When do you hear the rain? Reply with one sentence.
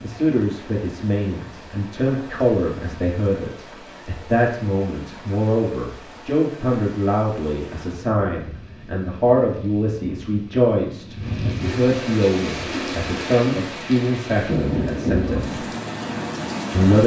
The rain can be heard from 0.0 to 17.0 s.